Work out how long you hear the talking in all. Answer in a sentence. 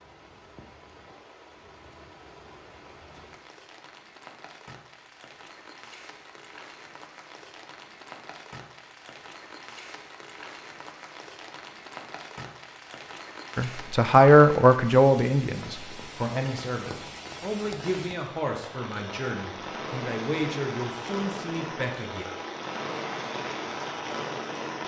The talking can be heard for 9 seconds in total.